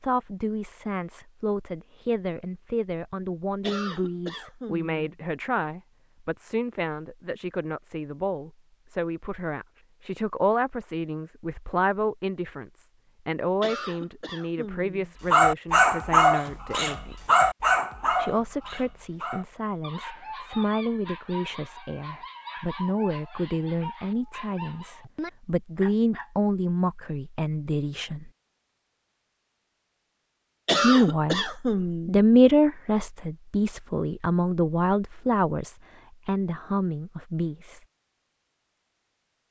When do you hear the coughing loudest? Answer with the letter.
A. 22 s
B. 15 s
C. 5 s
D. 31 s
D.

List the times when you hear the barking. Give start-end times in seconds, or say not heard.
15.3-26.3.